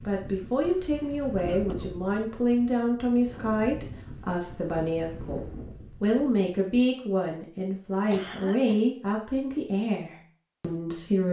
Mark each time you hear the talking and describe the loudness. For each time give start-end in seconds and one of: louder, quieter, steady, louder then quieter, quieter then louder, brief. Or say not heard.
0.0-11.2 steady.